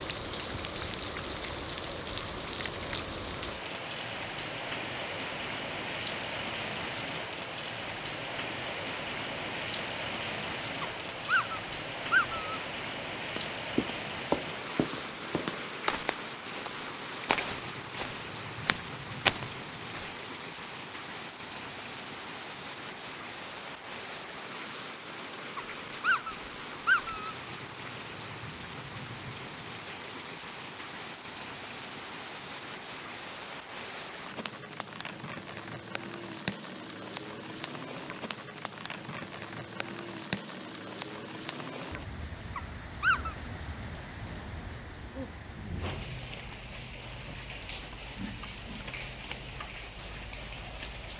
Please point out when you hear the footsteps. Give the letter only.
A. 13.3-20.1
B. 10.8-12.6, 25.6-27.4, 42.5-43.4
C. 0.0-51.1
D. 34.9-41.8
A.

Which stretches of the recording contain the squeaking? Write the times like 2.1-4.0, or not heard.
10.8-12.6, 25.6-27.4, 42.5-43.4.